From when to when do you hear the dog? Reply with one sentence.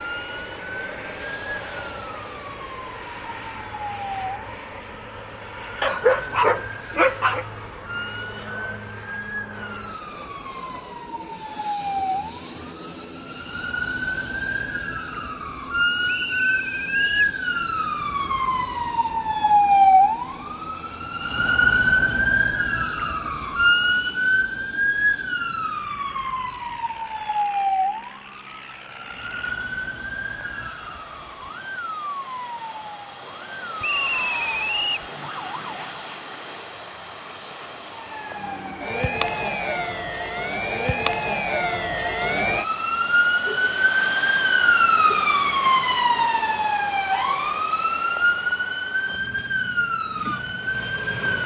The dog can be heard from 5.8 to 7.5 s.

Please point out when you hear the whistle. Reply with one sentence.
You can hear the whistle from 16.1 to 17.4 s and from 33.8 to 35.1 s.